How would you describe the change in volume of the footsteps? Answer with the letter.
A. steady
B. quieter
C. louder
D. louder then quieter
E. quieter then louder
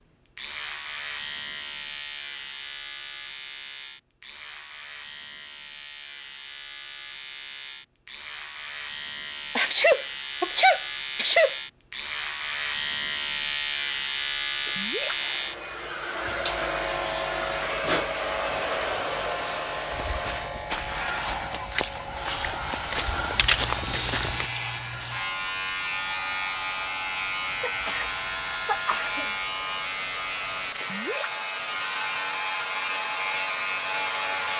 C.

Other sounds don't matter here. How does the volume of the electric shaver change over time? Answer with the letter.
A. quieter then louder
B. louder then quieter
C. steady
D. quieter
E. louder
E.